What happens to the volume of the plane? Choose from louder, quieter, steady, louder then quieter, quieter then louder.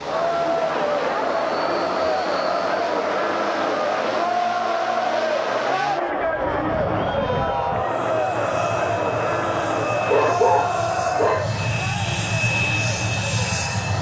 louder.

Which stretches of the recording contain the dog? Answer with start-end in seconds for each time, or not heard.
10.1-11.5.